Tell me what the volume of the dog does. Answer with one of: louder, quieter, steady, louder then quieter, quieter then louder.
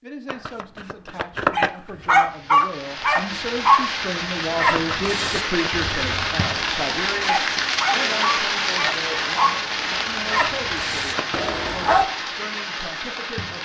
quieter.